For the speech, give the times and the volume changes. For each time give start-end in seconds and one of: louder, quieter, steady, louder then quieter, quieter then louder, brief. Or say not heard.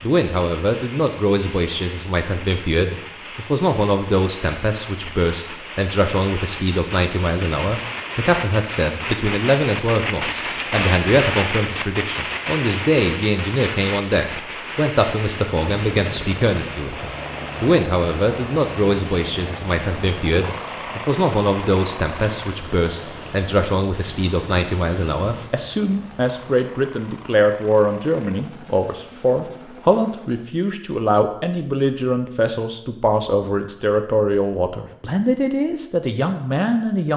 0.0-37.1 steady.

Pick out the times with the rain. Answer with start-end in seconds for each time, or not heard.
0.0-25.5.